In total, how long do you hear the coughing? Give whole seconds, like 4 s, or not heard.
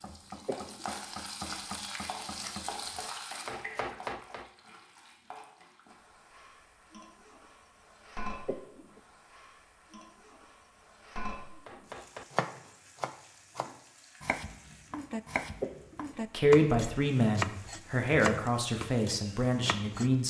2 s.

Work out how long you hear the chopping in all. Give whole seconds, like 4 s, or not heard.
13 s.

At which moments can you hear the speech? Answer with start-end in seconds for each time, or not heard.
16.3-20.2.